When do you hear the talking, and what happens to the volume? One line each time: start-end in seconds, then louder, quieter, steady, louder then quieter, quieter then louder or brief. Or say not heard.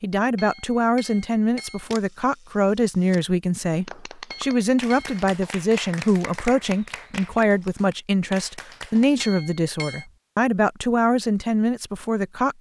0.0-12.5 steady.